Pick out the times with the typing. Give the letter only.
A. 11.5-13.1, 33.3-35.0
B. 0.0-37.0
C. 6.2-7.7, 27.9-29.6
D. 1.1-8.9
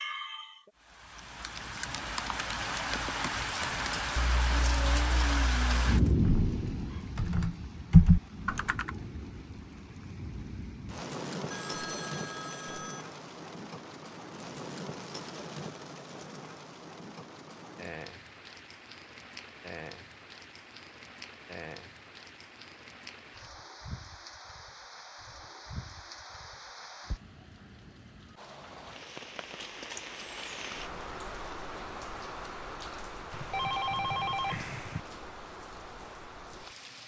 D.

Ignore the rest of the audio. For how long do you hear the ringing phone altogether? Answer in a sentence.
The ringing phone can be heard for 3 seconds in total.